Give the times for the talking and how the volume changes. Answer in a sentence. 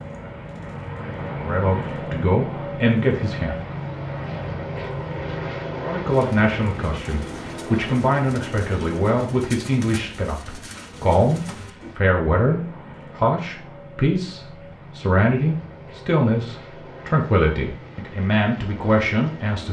The talking can be heard briefly from 1.4 to 3.5 s; and from 5.8 to 19.6 s, at a steady volume.